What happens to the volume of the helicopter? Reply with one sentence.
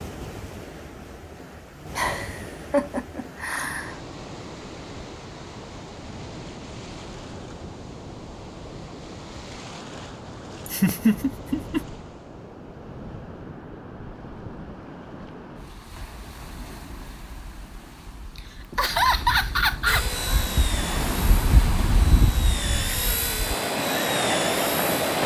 The volume of the helicopter goes down, then up.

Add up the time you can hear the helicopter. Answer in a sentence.
The helicopter can be heard for 5 seconds in total.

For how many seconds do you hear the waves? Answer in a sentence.
The waves can be heard for 25 seconds in total.